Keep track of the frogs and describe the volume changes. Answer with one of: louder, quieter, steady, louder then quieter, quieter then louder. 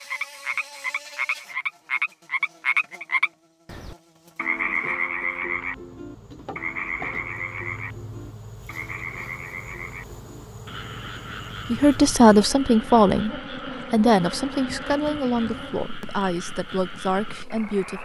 quieter.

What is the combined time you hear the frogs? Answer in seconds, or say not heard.
18 s.